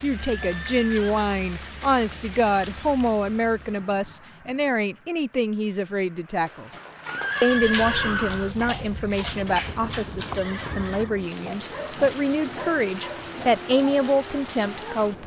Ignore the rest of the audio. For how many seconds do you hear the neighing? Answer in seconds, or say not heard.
3 s.